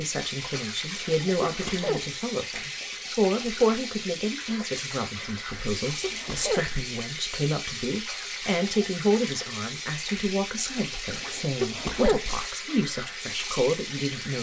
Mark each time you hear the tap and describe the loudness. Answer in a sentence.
You can hear the tap from 0.0 to 14.3 s, at a steady volume.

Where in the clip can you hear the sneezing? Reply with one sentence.
You can hear the sneezing from 0.9 to 2.0 s, from 5.8 to 6.7 s and from 11.1 to 12.2 s.